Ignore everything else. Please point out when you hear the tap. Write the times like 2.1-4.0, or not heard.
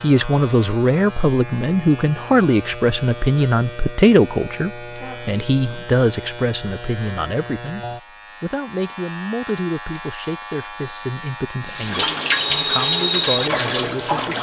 11.6-14.3.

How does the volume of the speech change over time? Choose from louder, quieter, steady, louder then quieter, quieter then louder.
quieter.